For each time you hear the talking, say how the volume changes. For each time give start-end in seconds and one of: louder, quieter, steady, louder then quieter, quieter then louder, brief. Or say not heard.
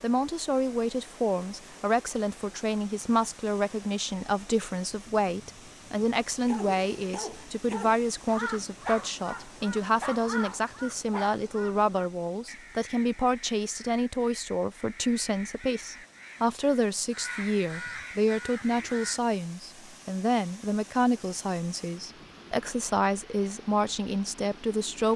0.0-25.1 steady.